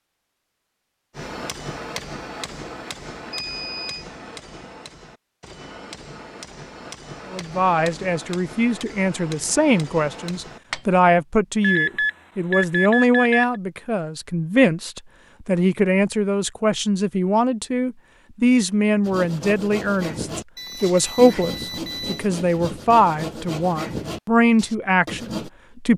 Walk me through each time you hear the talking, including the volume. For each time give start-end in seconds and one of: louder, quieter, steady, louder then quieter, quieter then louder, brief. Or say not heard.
7.3-25.9 steady.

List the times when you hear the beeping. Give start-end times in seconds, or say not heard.
3.3-4.0, 11.6-13.6, 20.6-22.2.